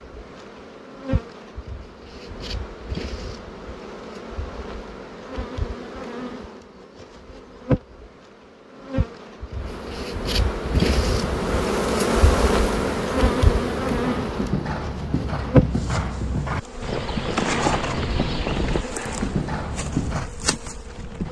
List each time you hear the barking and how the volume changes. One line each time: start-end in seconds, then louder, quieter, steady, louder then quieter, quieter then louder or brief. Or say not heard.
not heard.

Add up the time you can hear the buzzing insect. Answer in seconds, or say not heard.
21 s.